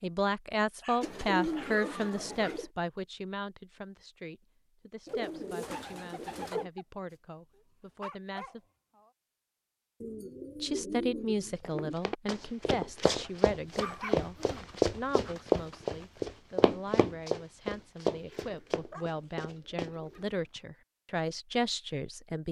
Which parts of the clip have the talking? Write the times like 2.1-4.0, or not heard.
0.0-8.6, 10.6-22.4.